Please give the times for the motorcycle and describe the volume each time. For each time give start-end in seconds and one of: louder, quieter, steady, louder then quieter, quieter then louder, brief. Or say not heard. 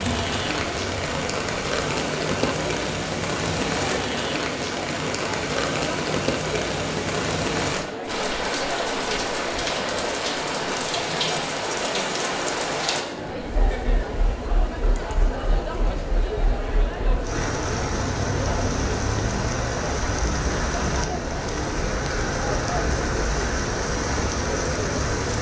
not heard.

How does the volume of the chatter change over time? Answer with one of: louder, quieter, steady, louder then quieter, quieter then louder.
steady.